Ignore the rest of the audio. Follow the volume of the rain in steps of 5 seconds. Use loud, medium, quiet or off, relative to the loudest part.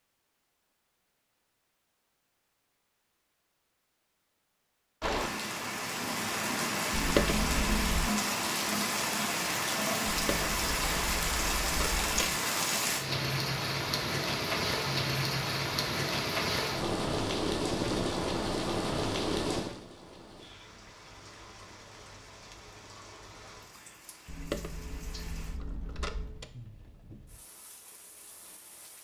off, loud, loud, loud, quiet, quiet.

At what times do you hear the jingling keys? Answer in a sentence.
The jingling keys can be heard from 6.9 to 8.1 s, from 10.1 to 12.2 s and from 24.2 to 26.5 s.